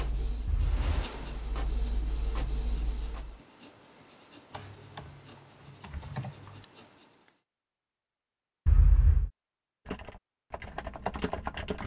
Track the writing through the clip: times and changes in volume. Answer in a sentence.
The writing can be heard from 0.3 to 7.4 s, getting quieter.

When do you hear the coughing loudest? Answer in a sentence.
The loudest moment of the coughing is at 9 seconds.